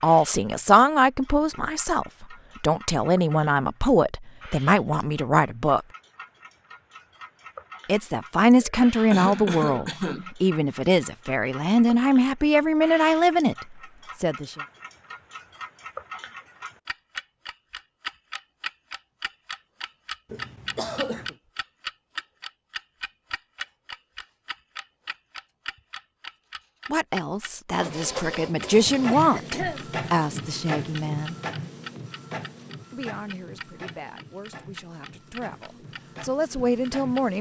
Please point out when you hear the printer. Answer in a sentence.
You can hear the printer from 27.8 to 37.3 s.